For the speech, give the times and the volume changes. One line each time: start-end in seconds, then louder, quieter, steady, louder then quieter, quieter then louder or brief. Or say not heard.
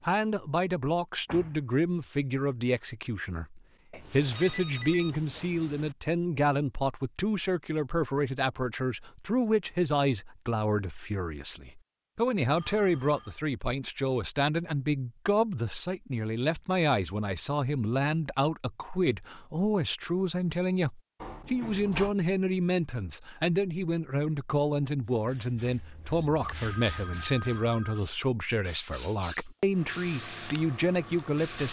0.0-31.6 steady.